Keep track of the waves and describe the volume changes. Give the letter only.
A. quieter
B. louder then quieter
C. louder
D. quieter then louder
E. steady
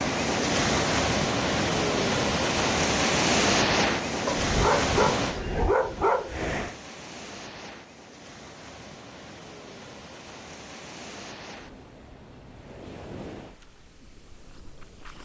A.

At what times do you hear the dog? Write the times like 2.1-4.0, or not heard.
4.2-6.8.